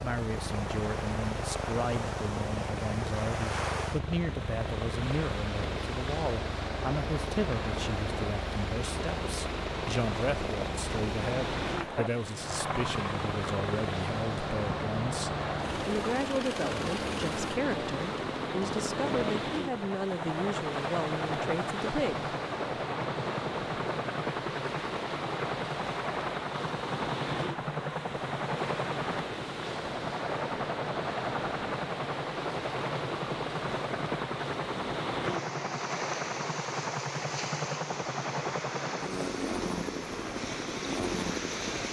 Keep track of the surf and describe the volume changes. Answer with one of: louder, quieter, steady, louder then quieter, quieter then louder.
steady.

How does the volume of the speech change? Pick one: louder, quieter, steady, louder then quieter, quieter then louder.
steady.